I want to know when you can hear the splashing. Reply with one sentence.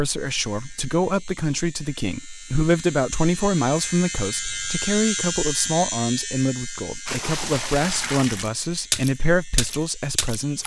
You can hear the splashing from 7.0 to 10.6 s.